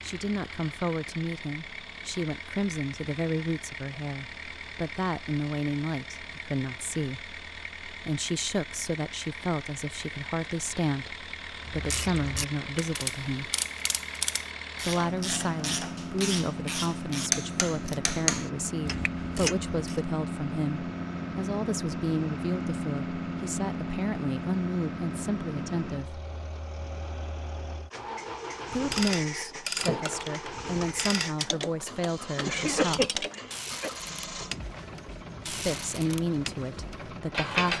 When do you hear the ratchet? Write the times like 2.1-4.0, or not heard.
11.7-20.0, 28.7-37.7.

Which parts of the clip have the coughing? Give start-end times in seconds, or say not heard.
32.5-33.9.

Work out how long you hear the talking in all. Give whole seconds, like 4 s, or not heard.
32 s.